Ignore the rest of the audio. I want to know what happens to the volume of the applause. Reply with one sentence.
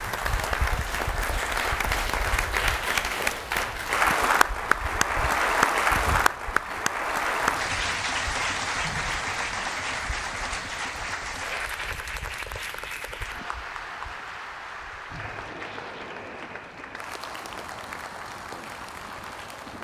The volume of the applause goes down.